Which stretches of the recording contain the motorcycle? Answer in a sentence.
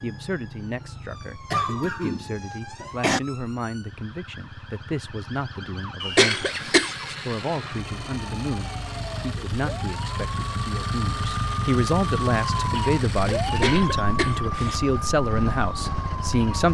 You can hear the motorcycle from 0.0 to 16.6 s.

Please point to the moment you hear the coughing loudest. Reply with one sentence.
The volume of the coughing peaks at 6 seconds.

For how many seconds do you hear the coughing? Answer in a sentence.
You can hear the coughing for 4 seconds altogether.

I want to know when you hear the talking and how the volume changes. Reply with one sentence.
You can hear the talking from 0.0 to 16.6 s, getting louder.